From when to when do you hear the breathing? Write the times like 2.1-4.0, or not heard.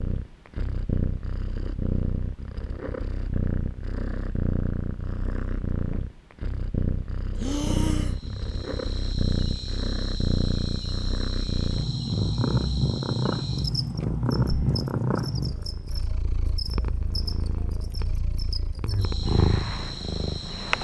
7.3-8.2, 14.4-14.9.